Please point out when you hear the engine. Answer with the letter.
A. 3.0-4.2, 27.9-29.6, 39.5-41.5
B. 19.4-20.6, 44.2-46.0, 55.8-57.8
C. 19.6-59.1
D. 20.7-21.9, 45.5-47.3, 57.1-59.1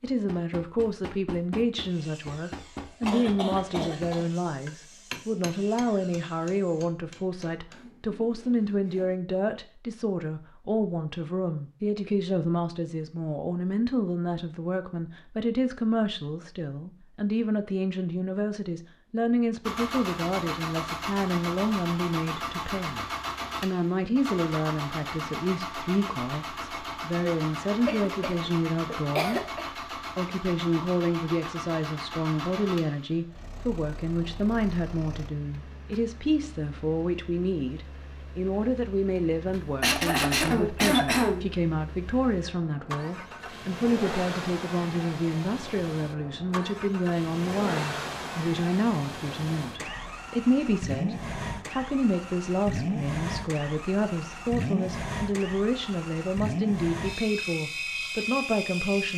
C.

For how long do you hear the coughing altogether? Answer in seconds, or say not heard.
5 s.